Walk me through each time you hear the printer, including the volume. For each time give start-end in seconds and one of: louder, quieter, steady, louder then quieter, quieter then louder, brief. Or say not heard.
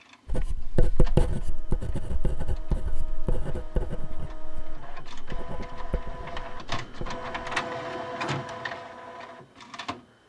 0.0-10.2 louder.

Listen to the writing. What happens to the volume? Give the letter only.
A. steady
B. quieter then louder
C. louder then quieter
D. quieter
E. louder
D.